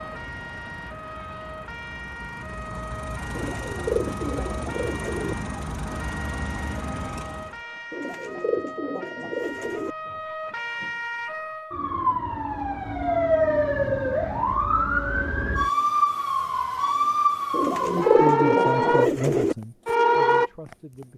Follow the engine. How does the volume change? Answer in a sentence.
The loudness of the engine goes up.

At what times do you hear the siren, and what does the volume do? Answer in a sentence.
You can hear the siren from 0.0 to 20.8 s, getting louder.